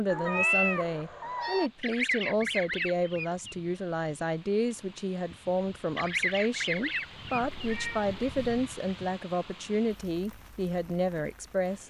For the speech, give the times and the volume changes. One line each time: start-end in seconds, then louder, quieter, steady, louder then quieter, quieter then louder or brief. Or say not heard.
0.0-11.8 steady.